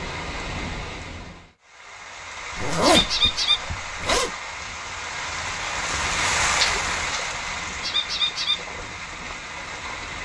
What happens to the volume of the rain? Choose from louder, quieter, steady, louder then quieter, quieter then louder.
louder then quieter.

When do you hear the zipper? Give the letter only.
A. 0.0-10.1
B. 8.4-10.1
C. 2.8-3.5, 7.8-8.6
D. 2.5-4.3
D.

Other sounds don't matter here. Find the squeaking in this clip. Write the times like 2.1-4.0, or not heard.
2.8-3.5, 7.8-8.6.